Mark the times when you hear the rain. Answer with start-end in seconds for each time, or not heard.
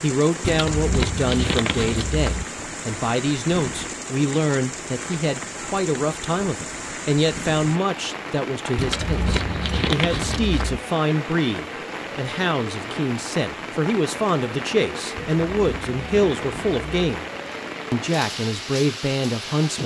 0.0-19.8.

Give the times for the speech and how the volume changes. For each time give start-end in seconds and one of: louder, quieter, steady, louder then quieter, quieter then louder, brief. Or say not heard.
0.0-17.2 steady
17.9-19.8 brief.